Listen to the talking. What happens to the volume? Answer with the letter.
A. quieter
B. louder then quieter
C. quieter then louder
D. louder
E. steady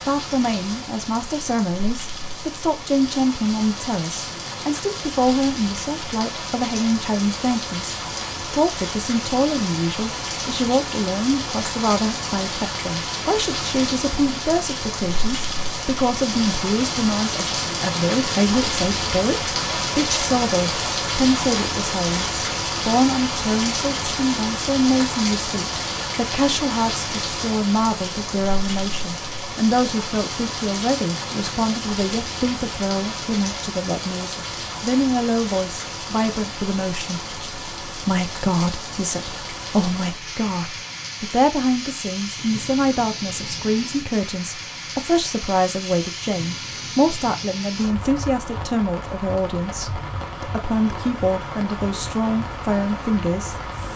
E.